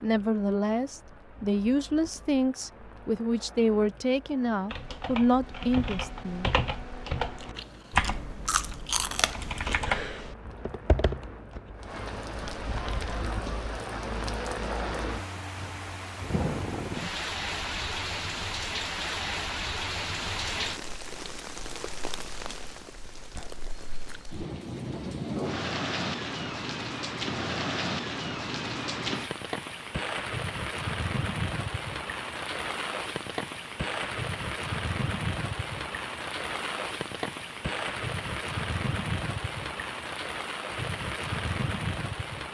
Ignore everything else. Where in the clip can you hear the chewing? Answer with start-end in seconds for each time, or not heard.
7.5-9.8.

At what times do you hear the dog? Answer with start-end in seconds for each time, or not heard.
not heard.